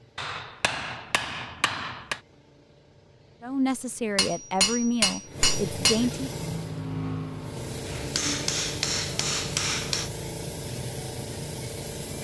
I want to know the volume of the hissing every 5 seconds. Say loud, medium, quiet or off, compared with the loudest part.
quiet, loud, loud.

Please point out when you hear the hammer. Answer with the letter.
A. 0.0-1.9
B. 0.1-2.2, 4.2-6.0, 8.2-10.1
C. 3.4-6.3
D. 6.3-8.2
B.